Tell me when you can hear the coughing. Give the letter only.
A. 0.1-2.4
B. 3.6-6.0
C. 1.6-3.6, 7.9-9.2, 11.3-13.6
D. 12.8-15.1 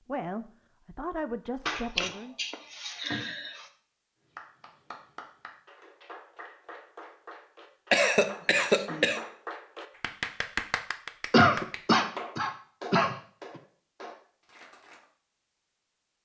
C.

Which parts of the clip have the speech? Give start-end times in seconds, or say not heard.
0.1-2.4.